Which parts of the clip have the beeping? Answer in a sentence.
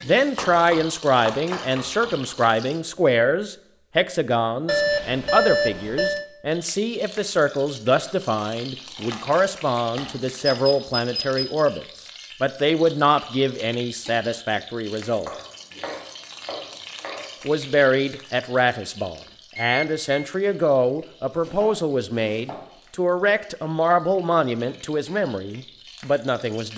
The beeping can be heard from 4.7 to 6.2 s, from 10.4 to 11.7 s and from 19.6 to 20.2 s.